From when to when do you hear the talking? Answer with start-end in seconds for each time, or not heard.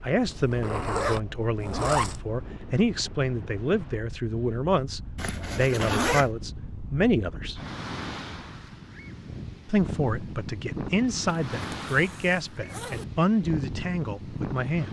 0.0-7.6, 9.7-14.8.